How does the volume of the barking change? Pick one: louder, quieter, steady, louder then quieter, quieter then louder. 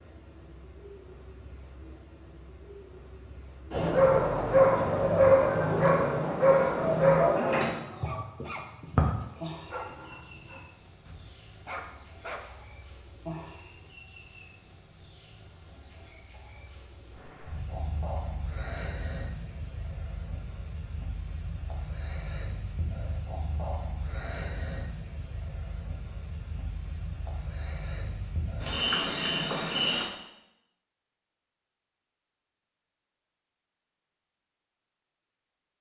quieter.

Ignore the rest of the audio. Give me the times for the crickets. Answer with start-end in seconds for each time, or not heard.
0.0-30.1.